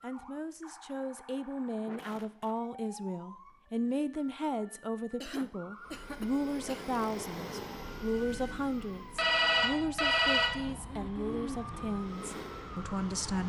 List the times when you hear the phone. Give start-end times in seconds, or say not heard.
9.2-10.6.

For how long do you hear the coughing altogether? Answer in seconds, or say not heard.
3 s.